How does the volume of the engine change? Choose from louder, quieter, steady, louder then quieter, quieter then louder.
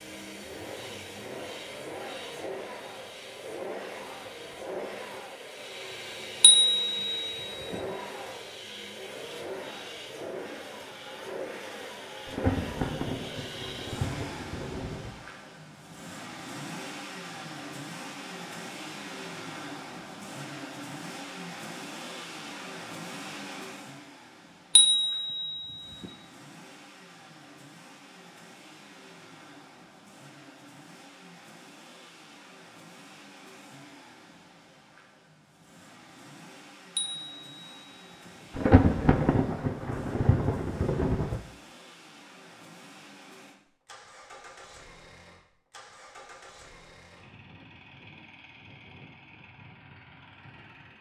quieter.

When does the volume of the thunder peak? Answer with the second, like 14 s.
39 s.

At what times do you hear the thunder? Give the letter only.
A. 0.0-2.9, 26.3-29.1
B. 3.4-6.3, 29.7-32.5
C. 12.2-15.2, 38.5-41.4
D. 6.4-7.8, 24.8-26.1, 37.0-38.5
C.